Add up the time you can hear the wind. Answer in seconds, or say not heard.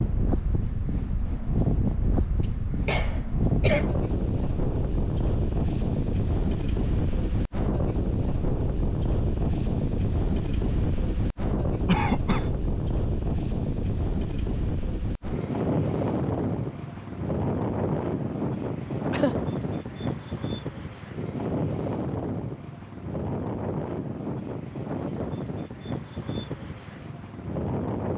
28 s.